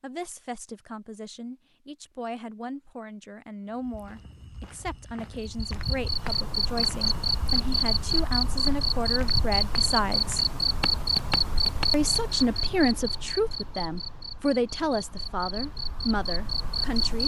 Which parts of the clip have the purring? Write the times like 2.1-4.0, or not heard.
not heard.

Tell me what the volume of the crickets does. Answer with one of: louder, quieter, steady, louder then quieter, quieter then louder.
quieter.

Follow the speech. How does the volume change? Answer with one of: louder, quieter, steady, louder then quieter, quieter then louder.
louder.